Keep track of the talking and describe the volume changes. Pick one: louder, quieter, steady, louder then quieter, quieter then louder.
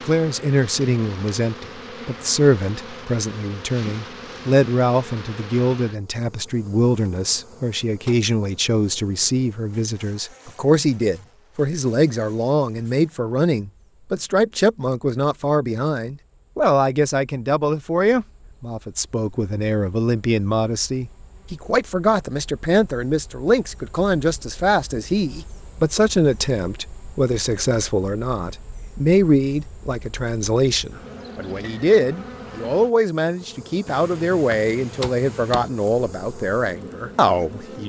steady.